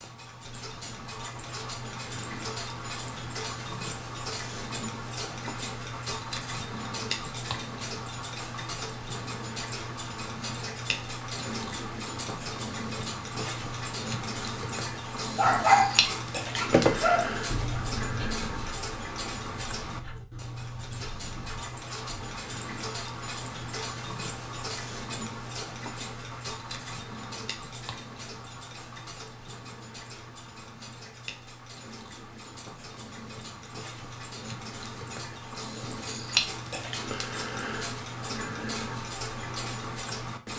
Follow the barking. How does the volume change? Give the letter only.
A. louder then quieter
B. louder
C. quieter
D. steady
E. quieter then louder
C.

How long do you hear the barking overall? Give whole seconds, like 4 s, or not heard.
7 s.